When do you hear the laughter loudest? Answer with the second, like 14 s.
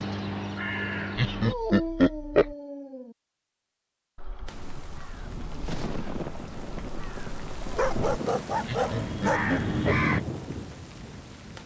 2 s.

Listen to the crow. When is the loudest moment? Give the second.
10 s.